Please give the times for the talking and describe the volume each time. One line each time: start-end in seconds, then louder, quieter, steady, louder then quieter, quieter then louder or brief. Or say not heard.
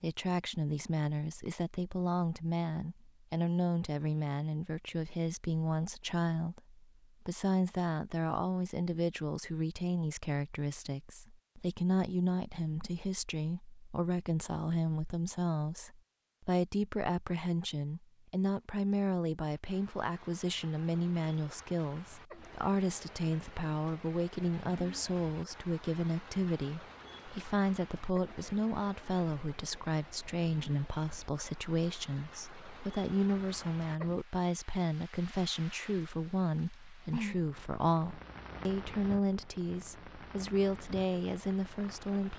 0.0-42.3 steady.